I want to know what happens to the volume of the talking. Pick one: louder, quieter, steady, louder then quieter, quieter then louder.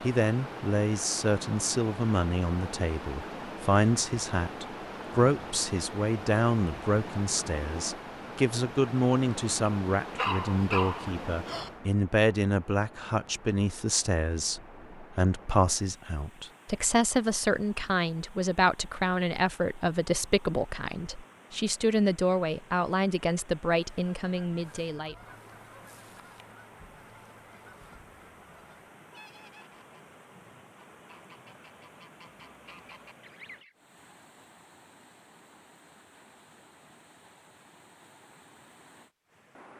steady.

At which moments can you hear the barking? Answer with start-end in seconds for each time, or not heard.
10.2-11.7.